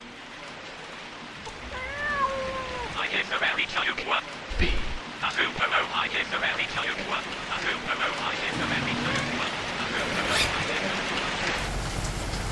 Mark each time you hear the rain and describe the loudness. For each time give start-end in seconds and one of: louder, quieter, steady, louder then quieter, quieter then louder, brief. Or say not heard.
0.0-12.4 louder.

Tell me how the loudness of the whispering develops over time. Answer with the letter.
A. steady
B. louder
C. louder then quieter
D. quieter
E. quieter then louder
D.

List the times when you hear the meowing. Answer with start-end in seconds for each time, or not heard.
1.4-3.0, 8.5-9.4.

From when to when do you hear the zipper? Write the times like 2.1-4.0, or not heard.
9.9-10.6.